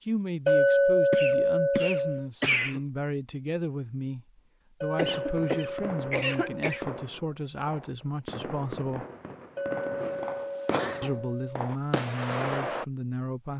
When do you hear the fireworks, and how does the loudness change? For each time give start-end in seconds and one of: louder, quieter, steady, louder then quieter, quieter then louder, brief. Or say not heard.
4.9-12.8 louder.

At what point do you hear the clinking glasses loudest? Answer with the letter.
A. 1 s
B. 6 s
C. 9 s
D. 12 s
A.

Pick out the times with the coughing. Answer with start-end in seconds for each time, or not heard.
1.1-2.8, 5.0-6.8, 10.7-11.2.